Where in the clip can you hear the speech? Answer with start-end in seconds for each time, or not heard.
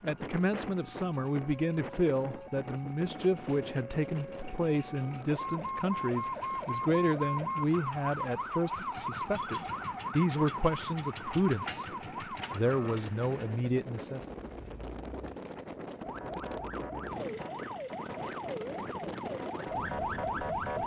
0.0-11.9, 12.5-14.2.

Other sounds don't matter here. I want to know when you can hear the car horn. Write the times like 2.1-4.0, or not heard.
not heard.